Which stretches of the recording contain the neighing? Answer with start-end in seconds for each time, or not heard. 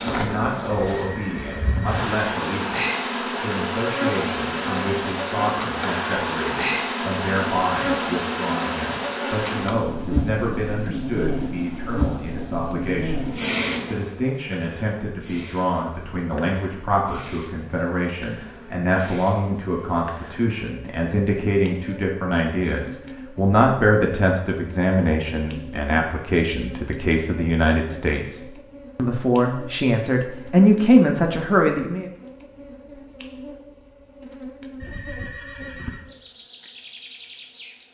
0.7-2.0, 34.8-36.0.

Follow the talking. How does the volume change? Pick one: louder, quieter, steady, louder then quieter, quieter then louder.
louder.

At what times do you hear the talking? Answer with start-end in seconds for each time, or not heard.
0.0-32.1.